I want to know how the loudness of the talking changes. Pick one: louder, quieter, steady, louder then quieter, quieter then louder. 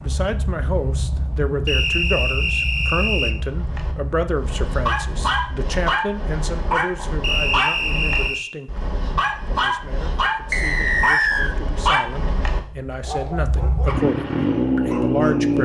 quieter then louder.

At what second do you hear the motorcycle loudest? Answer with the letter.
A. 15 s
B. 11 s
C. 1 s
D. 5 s
A.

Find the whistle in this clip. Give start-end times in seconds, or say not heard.
1.6-3.4, 7.2-8.6, 10.5-11.6.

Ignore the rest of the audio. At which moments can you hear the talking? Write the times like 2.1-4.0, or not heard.
0.0-15.6.